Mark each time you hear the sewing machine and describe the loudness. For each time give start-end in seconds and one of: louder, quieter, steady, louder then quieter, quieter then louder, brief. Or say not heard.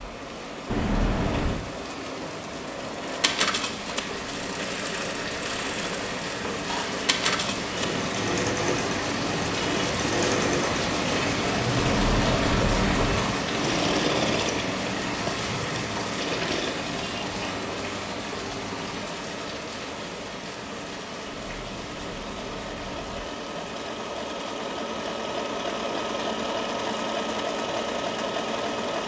3.0-29.0 quieter then louder.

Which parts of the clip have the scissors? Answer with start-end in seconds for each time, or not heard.
0.7-1.6, 11.8-13.2, 21.2-23.2.